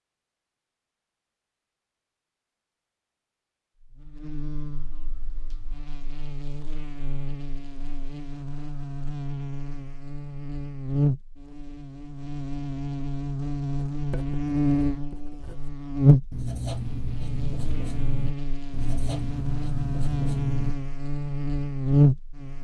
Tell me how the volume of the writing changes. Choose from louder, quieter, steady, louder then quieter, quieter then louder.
louder.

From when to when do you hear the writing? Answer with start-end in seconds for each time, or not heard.
13.9-20.8.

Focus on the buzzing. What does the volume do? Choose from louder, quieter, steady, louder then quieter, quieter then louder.
louder.